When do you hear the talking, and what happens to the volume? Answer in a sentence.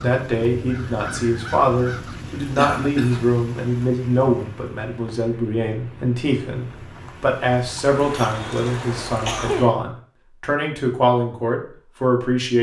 You can hear the talking from 0.0 to 12.5 s, at a steady volume.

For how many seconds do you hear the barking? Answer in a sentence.
The barking can't be heard in this clip.